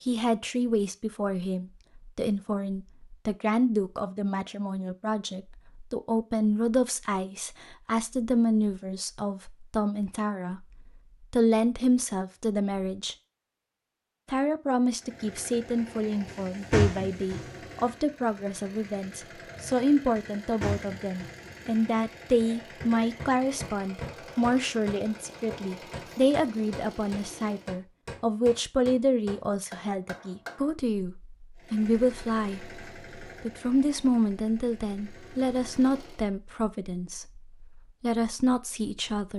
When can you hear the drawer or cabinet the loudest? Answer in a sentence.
The loudest moment of the drawer or cabinet is at 17 seconds.